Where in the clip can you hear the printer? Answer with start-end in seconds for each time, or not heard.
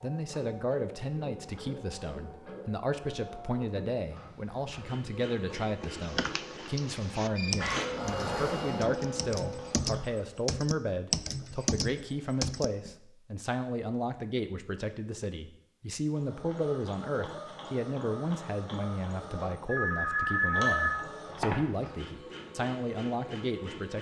0.0-10.2, 16.1-23.9.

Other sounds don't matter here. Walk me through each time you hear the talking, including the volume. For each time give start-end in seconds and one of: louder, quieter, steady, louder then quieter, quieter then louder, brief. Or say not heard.
0.0-23.9 steady.